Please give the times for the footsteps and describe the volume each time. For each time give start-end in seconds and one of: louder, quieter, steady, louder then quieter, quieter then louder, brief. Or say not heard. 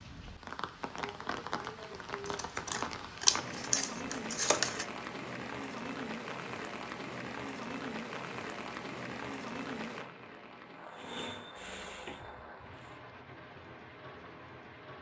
not heard.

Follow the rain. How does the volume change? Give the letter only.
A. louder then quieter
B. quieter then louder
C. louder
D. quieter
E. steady
D.